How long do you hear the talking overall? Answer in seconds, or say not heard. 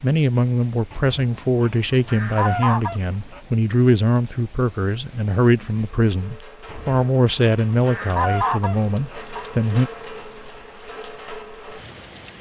10 s.